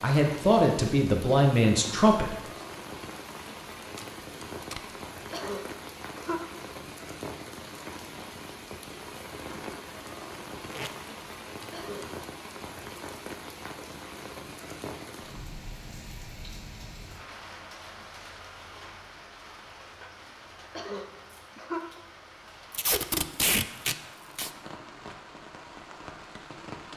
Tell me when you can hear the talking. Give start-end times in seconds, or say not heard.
0.0-2.3.